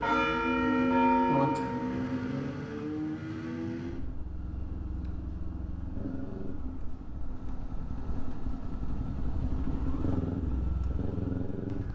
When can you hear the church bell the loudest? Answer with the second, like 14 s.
1 s.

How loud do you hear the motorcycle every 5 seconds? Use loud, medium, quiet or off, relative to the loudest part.
loud, medium, loud.